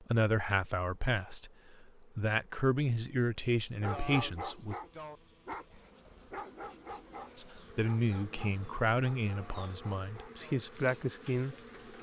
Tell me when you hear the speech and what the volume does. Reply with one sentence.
You can hear the speech from 0.0 to 4.8 s, getting quieter then louder; and from 7.3 to 11.6 s, getting quieter then louder.